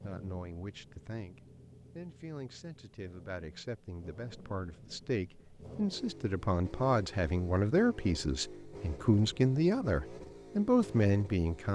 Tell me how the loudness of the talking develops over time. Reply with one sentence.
The volume of the talking goes up.